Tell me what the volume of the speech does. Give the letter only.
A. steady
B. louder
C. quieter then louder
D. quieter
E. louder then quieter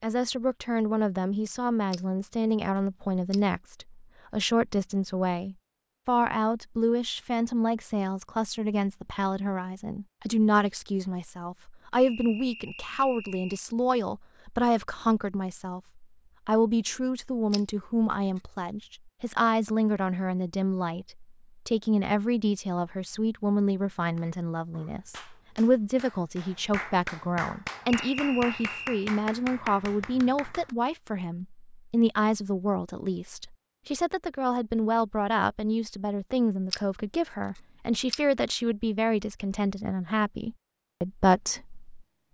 A.